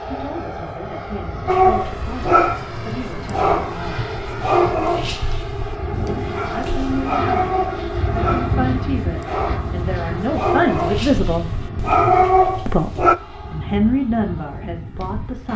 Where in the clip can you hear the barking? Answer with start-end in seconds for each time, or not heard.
1.4-13.2.